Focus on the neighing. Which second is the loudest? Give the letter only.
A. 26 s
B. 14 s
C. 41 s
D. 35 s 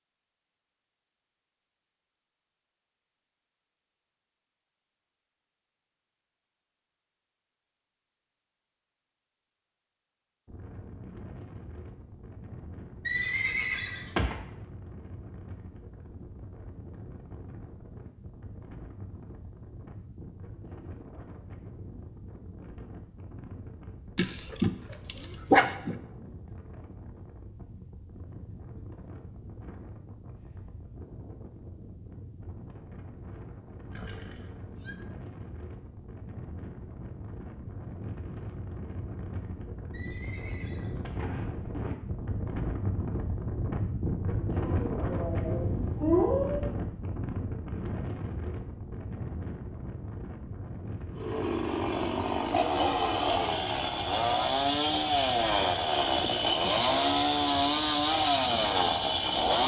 B.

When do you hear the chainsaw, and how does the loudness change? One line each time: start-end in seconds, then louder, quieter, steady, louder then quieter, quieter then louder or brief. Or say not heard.
51.1-59.6 steady.